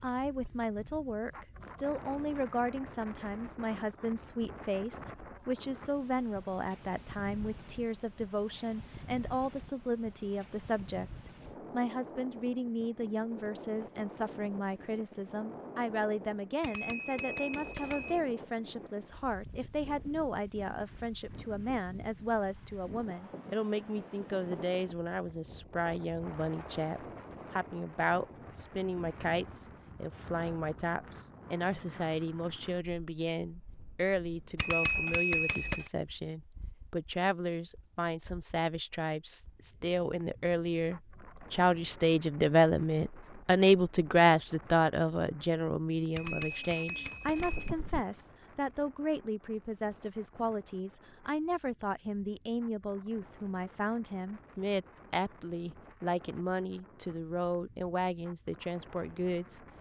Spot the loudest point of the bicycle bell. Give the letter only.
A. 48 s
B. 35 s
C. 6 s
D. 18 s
B.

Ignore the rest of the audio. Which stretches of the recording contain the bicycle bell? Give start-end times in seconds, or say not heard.
16.6-18.2, 34.5-35.9, 46.1-47.8.